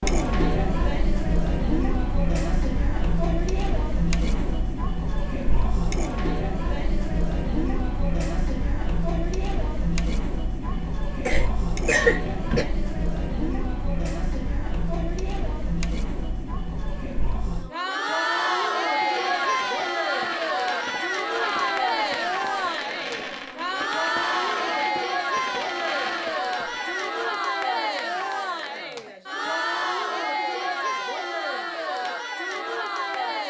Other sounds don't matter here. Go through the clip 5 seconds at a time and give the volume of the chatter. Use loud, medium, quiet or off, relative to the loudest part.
loud, loud, medium, loud, loud, loud, loud.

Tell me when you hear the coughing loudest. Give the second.
12 s.